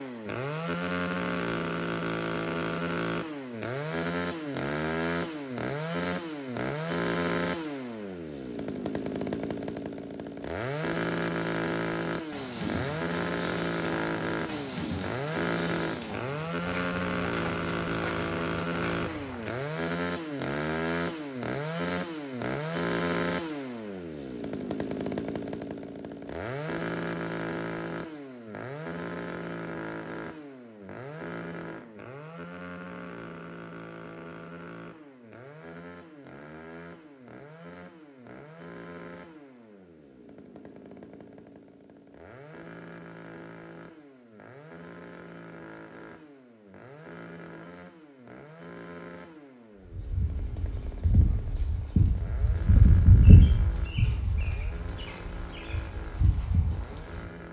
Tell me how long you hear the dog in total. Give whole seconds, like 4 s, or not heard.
not heard.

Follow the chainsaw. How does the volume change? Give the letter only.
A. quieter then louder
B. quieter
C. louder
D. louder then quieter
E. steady
B.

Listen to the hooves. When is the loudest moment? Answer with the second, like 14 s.
53 s.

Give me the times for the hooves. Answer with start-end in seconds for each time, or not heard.
12.3-19.6, 49.9-57.2.